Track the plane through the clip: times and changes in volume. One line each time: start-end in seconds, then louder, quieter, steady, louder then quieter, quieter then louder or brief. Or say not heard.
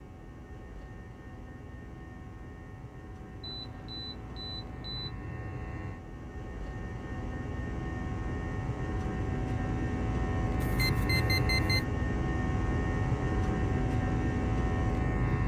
0.0-15.4 louder.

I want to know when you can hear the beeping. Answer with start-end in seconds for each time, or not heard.
3.4-5.1, 10.6-11.8.